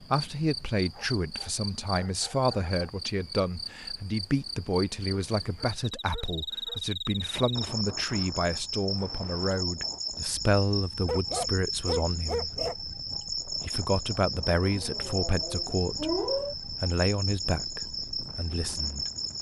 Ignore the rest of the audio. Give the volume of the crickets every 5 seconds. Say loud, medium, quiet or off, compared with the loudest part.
medium, loud, loud, loud.